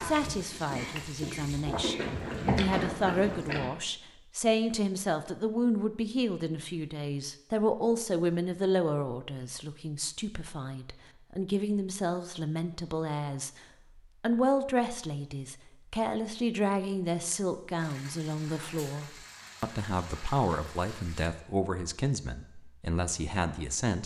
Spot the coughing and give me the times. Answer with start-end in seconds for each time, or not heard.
0.4-2.1.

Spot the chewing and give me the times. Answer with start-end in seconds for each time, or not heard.
0.0-3.7.